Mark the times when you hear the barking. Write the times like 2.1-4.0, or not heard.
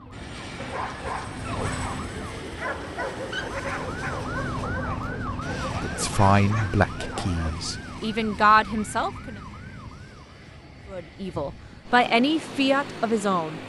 0.6-7.5.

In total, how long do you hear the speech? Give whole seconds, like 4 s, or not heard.
6 s.